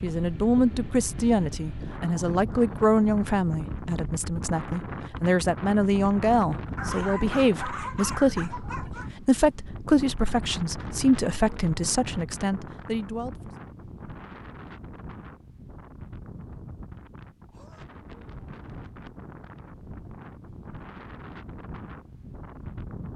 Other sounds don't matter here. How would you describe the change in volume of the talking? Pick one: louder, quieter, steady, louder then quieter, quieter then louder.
steady.